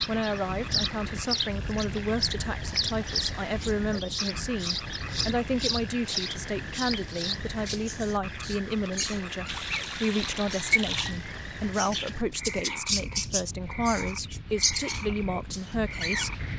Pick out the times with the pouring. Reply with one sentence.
The pouring can be heard from 9.4 to 11.2 s.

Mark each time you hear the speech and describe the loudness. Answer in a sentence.
You can hear the speech from 0.1 to 16.4 s, at a steady volume.